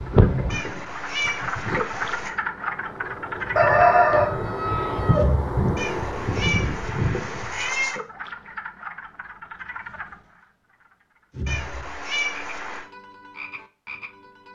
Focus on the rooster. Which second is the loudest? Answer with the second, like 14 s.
4 s.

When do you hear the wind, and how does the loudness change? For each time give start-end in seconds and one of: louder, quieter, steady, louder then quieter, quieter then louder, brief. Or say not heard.
0.0-7.7 quieter then louder.